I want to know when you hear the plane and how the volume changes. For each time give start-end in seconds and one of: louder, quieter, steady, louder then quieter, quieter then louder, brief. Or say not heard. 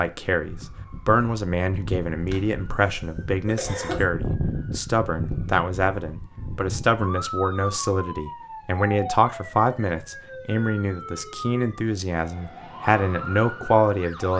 not heard.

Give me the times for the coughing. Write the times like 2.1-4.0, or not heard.
2.2-4.0.